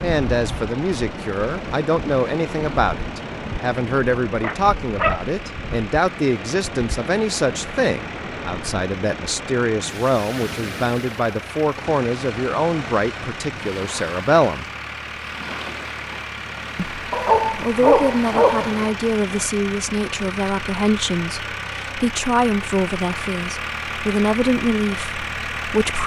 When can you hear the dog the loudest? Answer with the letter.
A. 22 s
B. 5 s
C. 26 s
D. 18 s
D.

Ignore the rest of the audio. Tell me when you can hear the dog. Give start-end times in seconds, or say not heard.
4.4-5.2, 17.1-18.9.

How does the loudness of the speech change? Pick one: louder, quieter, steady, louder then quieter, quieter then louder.
steady.